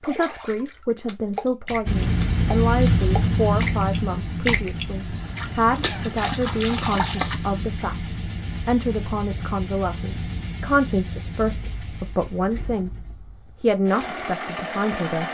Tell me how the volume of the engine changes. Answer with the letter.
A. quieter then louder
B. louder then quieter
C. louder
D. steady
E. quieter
E.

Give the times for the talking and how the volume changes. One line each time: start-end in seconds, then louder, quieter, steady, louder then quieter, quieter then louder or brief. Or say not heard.
0.0-15.2 steady.